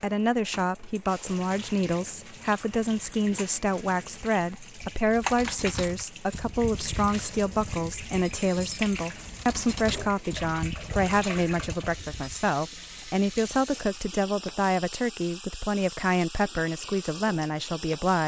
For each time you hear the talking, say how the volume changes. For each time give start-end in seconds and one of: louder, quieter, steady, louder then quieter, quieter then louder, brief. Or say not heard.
0.0-18.2 steady.